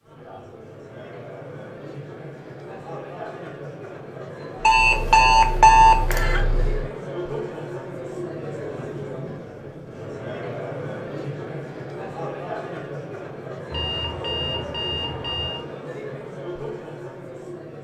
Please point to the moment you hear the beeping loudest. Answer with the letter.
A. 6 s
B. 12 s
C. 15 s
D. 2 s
A.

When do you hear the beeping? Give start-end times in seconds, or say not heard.
4.6-6.5, 13.7-15.6.